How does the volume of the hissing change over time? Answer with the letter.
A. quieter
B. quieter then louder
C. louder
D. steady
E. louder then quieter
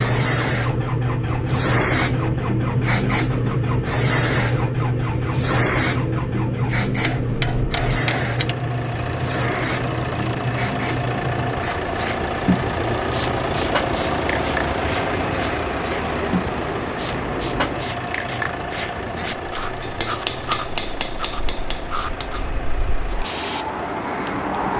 A.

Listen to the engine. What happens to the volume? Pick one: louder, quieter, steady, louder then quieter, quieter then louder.
louder then quieter.